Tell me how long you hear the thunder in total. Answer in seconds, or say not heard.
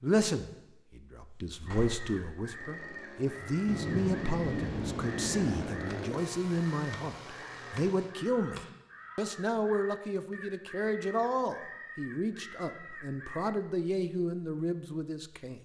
2 s.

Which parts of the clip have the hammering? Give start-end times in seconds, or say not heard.
not heard.